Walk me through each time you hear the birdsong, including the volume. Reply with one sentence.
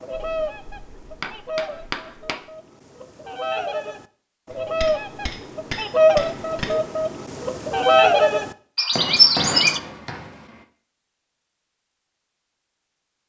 The birdsong can be heard from 0.0 to 9.8 s, getting louder.